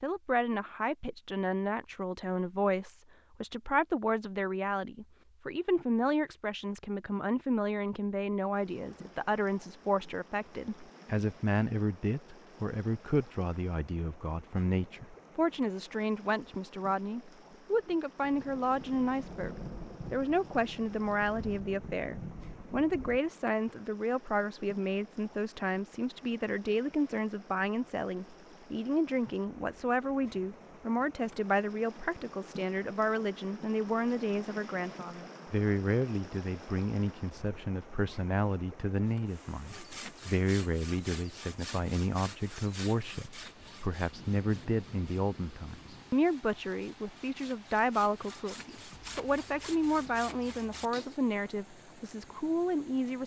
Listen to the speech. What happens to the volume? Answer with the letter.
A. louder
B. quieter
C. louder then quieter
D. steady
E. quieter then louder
D.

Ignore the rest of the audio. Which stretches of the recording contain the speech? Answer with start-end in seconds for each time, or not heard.
0.0-53.2.